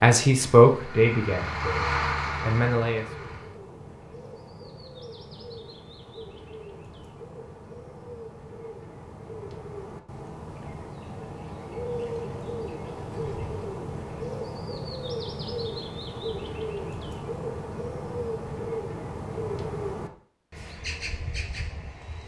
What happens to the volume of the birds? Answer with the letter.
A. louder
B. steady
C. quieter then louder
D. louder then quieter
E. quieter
A.